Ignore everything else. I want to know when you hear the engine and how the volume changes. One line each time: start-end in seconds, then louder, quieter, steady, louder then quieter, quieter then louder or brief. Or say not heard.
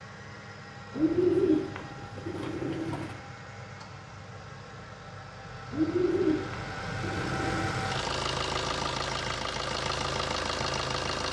0.0-11.2 louder.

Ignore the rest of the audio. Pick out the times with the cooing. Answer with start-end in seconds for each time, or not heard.
0.9-3.1, 5.7-7.8.